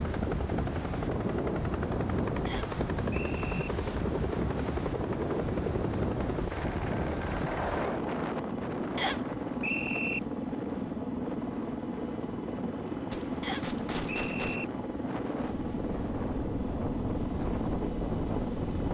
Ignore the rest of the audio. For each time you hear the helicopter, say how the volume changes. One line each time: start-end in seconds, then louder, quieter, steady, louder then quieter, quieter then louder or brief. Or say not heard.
0.0-18.9 steady.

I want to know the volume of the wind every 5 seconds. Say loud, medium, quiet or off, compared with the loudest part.
loud, loud, medium, loud.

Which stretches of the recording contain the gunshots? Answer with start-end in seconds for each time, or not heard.
13.1-14.6.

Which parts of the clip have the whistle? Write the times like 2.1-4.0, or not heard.
2.5-3.7, 8.9-10.2, 13.4-14.7.